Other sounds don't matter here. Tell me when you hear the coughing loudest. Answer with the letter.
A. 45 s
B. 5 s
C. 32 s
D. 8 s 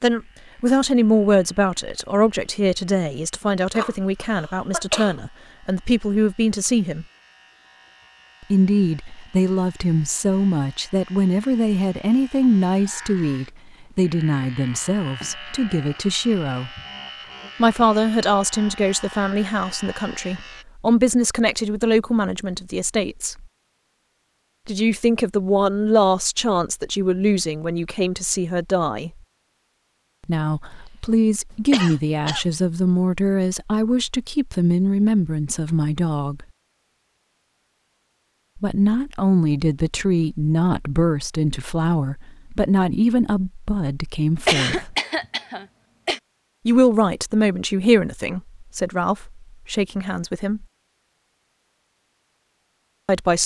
A.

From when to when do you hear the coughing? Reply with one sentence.
You can hear the coughing from 3.7 to 5.2 s, from 31.1 to 32.5 s and from 44.5 to 46.2 s.